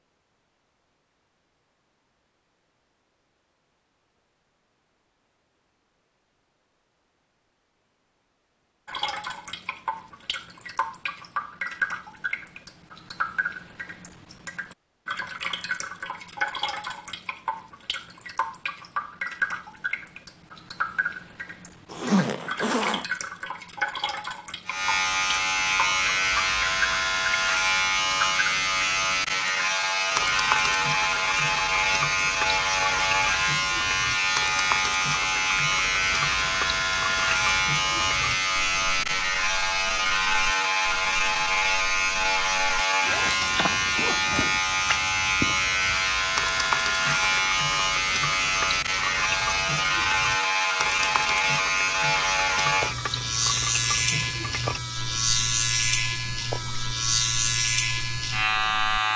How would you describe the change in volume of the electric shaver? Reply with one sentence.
The volume of the electric shaver stays about the same.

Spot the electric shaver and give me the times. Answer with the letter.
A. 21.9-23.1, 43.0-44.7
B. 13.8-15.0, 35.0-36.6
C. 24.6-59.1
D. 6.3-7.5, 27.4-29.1
C.